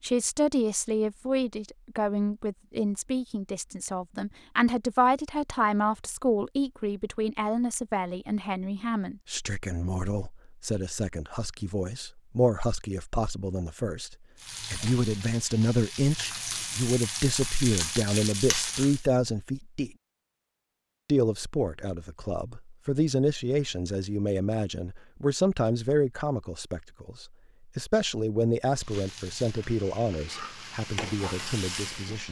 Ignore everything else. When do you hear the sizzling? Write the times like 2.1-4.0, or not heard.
14.3-19.1, 28.7-32.2.